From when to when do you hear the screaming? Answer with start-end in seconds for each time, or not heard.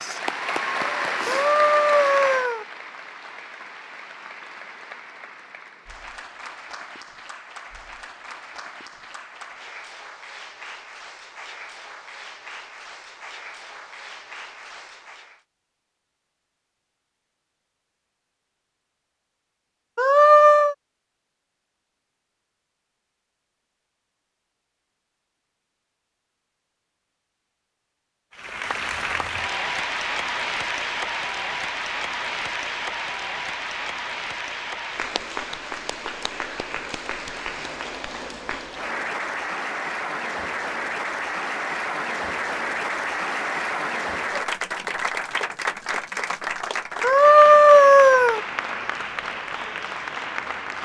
1.2-2.6, 19.9-20.8, 47.0-48.4.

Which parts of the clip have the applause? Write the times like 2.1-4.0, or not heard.
0.0-15.4, 28.4-50.7.